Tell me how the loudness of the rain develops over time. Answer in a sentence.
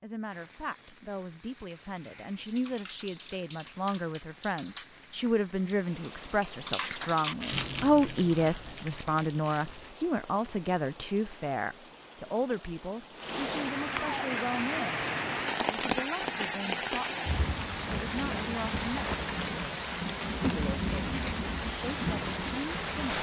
The volume of the rain goes up.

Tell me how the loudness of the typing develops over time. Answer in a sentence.
The volume of the typing goes up, then down.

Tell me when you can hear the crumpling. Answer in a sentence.
You can hear the crumpling from 7.4 to 9.9 s.